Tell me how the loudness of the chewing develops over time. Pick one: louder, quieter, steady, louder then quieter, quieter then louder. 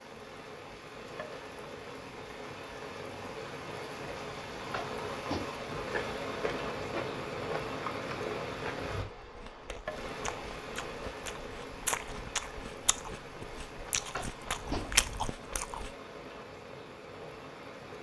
louder.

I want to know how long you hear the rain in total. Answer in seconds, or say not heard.
18 s.